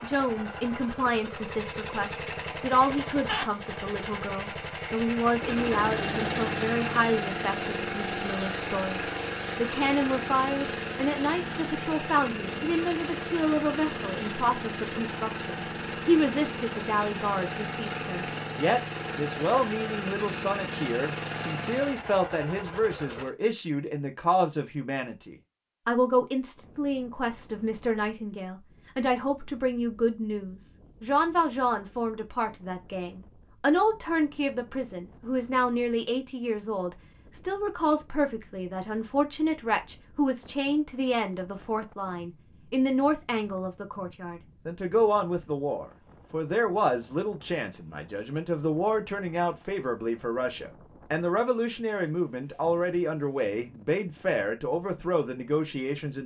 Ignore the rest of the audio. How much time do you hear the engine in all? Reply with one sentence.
The engine can be heard for 23 seconds in total.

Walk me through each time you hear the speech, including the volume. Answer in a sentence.
The speech can be heard from 0.0 to 56.2 s, at a steady volume.